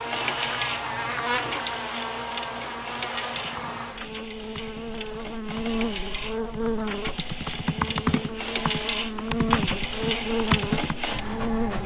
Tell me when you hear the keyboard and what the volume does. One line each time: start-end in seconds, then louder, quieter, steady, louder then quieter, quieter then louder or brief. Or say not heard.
3.3-11.0 louder.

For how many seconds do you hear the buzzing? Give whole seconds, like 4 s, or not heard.
12 s.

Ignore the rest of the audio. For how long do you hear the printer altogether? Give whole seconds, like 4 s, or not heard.
12 s.